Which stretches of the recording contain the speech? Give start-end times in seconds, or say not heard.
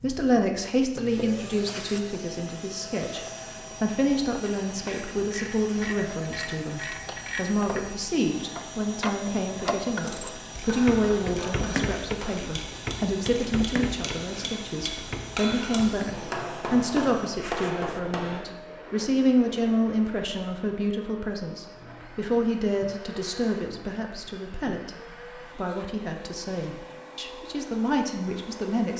0.0-24.9, 25.6-28.9.